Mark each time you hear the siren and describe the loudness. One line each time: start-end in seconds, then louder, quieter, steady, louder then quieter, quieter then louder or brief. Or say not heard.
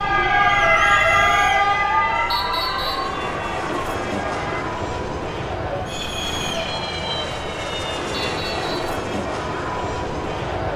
0.0-4.6 quieter.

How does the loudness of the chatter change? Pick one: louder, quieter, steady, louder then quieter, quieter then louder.
steady.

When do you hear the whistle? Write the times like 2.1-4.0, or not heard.
2.3-3.1, 8.3-8.9.